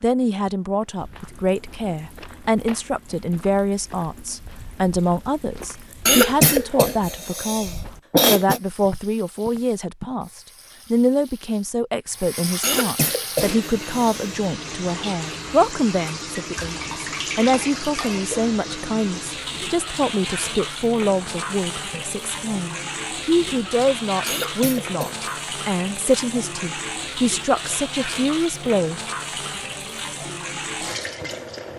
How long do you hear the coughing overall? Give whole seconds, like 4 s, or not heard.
5 s.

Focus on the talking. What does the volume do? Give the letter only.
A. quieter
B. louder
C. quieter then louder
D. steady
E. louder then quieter
D.